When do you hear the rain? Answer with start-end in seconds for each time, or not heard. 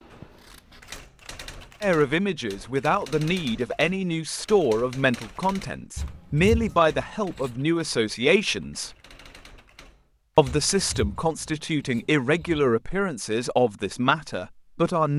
not heard.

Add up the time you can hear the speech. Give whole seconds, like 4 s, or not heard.
12 s.